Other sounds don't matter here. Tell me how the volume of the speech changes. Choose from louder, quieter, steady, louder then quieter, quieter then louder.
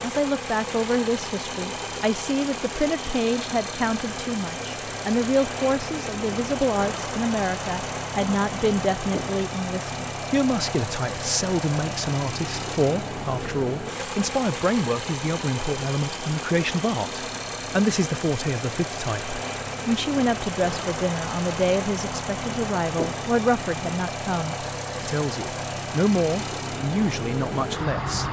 steady.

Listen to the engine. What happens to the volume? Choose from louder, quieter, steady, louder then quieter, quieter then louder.
steady.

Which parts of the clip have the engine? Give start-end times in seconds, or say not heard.
0.0-28.2.